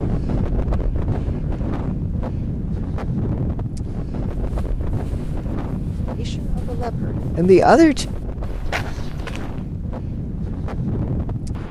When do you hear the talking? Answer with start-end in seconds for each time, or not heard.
6.2-8.1.